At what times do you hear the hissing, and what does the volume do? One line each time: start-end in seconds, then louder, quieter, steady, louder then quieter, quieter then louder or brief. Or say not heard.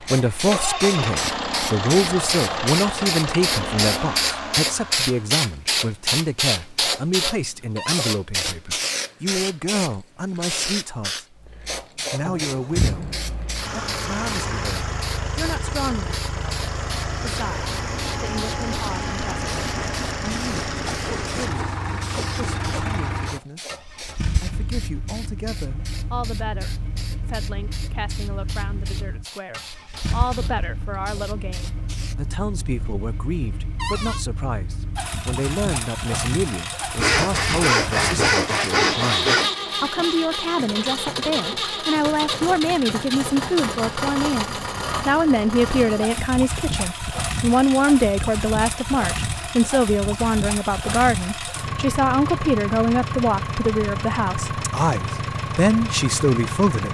0.0-32.1 quieter.